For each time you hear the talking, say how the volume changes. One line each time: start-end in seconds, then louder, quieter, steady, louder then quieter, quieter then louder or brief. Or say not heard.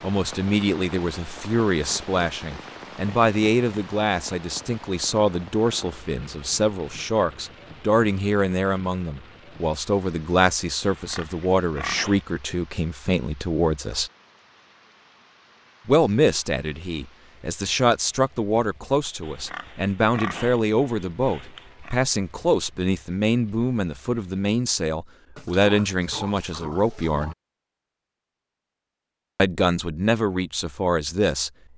0.0-14.1 steady
15.8-27.4 steady
29.4-31.5 brief.